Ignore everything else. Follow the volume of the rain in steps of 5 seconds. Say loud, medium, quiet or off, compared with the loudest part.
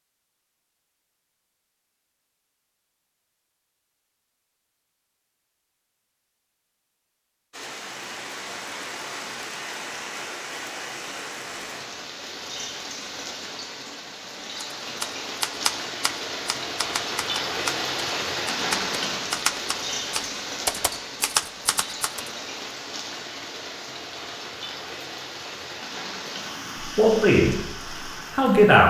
off, medium, medium, loud, medium, medium.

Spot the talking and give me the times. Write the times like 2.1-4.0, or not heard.
26.9-27.6, 28.4-28.8.